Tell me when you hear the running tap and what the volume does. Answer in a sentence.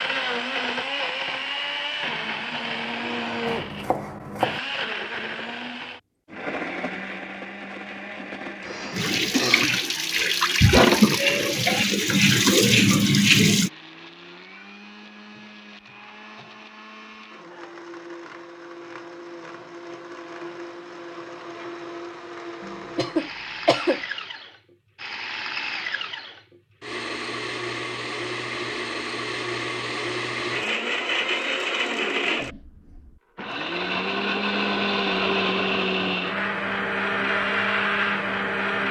You can hear the running tap from 8.9 to 13.7 s, getting louder.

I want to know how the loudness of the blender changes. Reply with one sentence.
The loudness of the blender goes down, then up.